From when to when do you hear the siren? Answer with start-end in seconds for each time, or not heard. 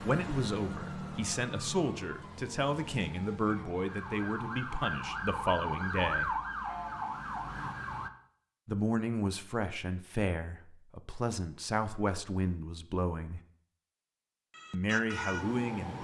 0.0-8.1, 14.5-15.9.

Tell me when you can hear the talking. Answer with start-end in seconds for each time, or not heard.
0.0-6.3, 8.7-13.4, 14.7-15.9.